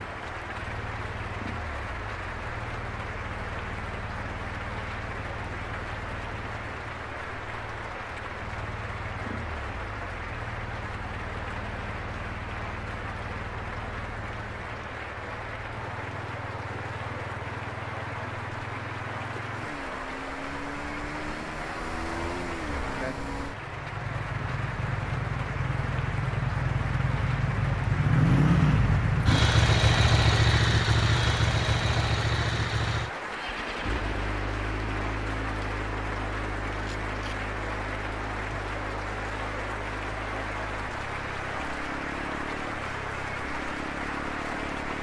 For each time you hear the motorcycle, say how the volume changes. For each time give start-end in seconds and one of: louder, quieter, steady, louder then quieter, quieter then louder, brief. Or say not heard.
0.0-44.9 louder then quieter.